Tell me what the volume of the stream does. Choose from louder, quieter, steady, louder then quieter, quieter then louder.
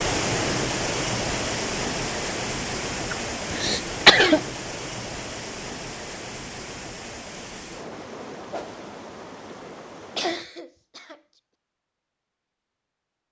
quieter.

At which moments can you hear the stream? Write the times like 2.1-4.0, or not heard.
0.0-10.4.